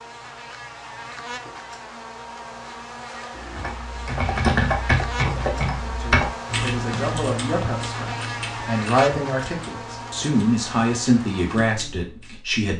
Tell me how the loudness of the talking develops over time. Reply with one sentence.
The volume of the talking goes up.